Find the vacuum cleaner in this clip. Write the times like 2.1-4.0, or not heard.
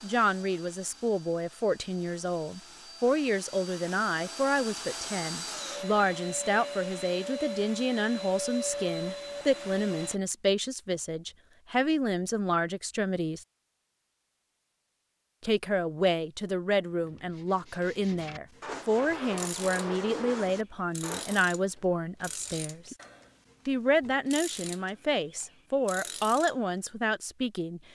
0.0-10.2.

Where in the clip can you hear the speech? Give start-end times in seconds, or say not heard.
0.0-13.4, 15.4-22.9, 23.6-27.8.